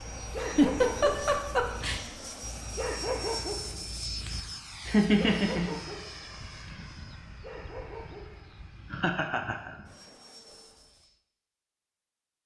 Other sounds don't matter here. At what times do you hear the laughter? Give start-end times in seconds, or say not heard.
0.4-2.0, 4.8-5.8, 8.9-9.8.